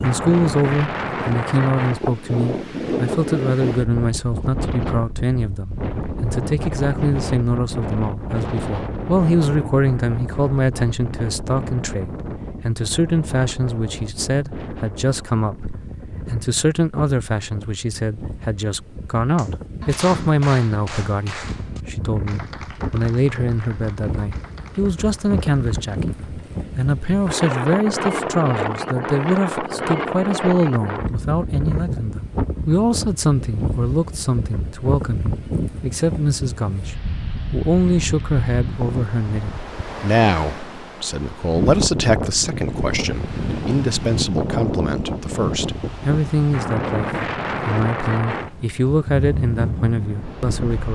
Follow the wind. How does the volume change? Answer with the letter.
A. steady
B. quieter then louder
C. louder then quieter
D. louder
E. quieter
B.